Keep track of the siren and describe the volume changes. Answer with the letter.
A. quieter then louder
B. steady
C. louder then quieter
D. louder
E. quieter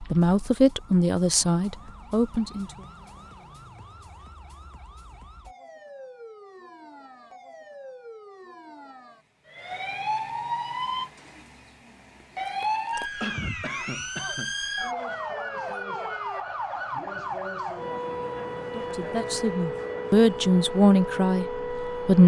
D.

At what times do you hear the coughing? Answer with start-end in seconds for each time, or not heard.
13.2-14.6.